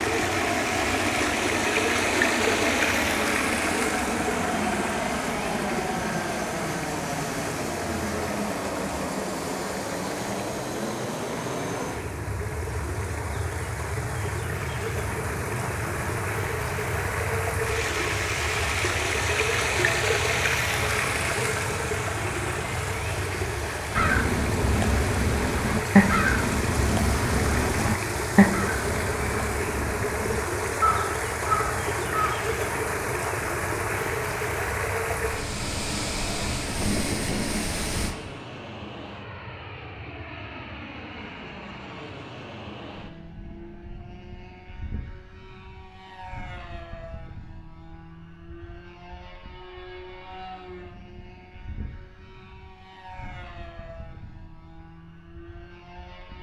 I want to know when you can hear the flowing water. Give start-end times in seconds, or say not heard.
0.0-38.1.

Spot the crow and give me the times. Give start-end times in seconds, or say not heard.
23.9-32.4.